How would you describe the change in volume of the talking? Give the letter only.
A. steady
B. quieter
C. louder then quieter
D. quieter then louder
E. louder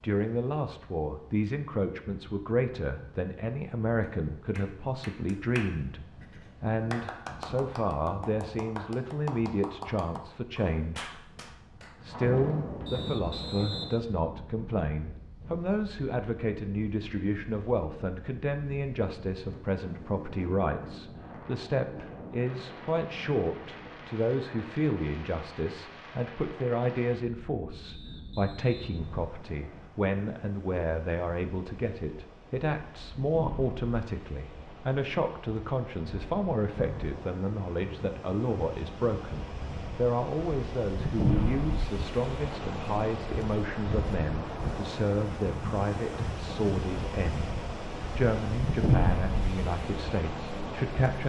A.